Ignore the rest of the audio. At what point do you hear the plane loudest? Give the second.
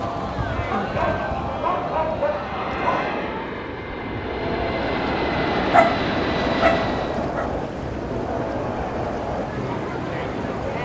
6 s.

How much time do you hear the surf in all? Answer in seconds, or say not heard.
11 s.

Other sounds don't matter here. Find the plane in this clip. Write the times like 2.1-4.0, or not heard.
2.4-7.2.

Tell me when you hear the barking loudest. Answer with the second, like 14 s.
6 s.